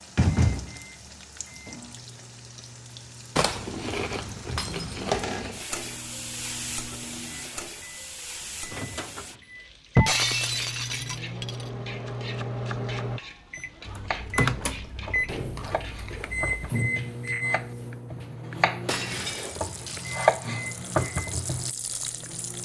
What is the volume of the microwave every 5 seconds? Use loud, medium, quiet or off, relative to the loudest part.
quiet, medium, loud, loud, medium.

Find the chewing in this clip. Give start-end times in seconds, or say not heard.
3.4-5.7, 13.8-16.8.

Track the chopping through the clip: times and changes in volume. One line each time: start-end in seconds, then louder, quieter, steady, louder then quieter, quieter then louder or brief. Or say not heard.
12.1-21.7 louder.